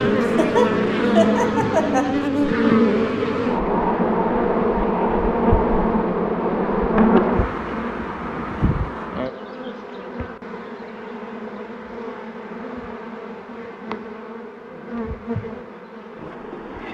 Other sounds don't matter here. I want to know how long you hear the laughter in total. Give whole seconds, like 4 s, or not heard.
2 s.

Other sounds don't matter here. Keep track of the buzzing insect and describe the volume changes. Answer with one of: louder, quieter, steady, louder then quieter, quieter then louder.
quieter.